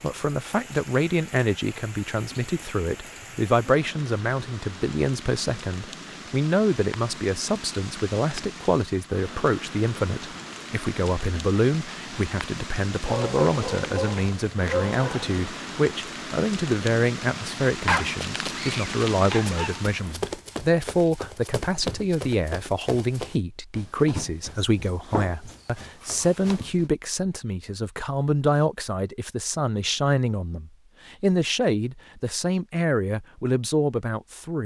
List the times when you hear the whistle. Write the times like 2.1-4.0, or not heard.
not heard.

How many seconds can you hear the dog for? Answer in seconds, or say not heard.
4 s.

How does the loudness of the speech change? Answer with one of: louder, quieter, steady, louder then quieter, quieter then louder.
steady.